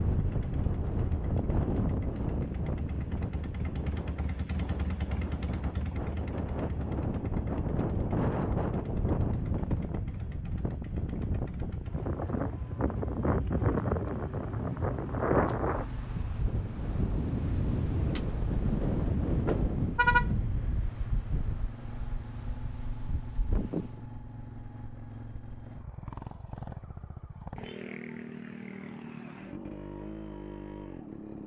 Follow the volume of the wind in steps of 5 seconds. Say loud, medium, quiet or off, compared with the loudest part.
loud, loud, loud, loud, medium, off, off.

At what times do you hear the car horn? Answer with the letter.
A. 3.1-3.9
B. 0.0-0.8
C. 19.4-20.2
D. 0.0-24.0
C.